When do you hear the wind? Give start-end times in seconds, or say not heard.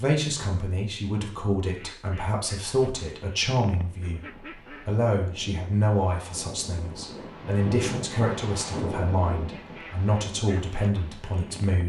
3.8-11.8.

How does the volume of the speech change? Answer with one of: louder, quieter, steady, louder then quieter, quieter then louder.
steady.